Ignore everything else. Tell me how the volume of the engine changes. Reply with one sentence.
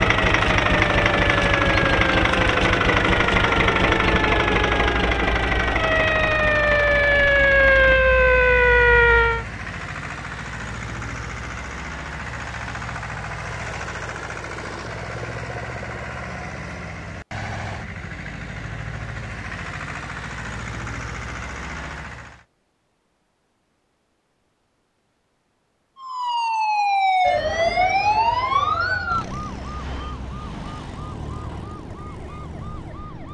The loudness of the engine goes down.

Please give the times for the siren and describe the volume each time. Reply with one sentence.
You can hear the siren from 0.0 to 9.4 s, getting louder; and from 25.9 to 33.2 s, getting quieter.